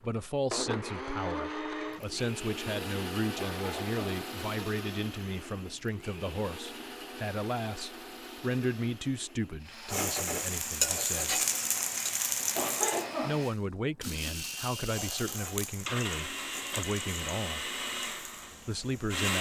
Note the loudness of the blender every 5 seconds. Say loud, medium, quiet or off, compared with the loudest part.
loud, medium, medium, loud.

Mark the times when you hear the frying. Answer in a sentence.
The frying can be heard from 9.8 to 13.1 s and from 14.8 to 19.2 s.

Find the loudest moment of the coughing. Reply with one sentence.
The loudest moment of the coughing is at 13 seconds.